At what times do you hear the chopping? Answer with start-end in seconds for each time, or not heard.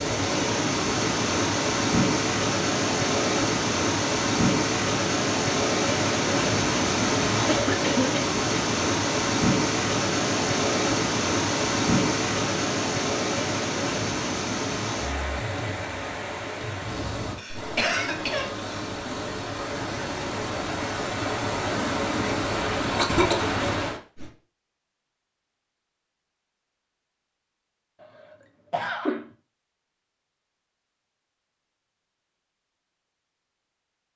not heard.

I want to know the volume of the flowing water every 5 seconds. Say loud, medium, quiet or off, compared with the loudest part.
loud, loud, loud, medium, loud, off, off.